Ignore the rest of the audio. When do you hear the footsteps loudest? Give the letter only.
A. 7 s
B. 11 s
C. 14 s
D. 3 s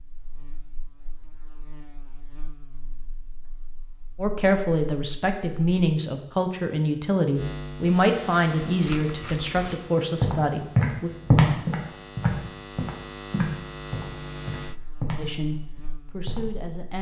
B.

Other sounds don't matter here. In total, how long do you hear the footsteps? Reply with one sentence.
The footsteps can be heard for 6 seconds in total.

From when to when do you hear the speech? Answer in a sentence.
You can hear the speech from 4.2 to 11.1 s and from 15.2 to 16.9 s.